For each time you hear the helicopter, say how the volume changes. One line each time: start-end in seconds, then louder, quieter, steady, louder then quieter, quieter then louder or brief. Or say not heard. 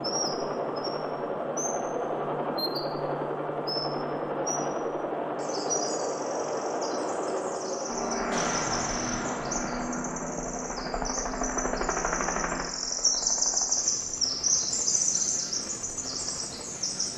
0.0-17.1 quieter.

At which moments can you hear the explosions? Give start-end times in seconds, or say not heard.
8.3-9.6.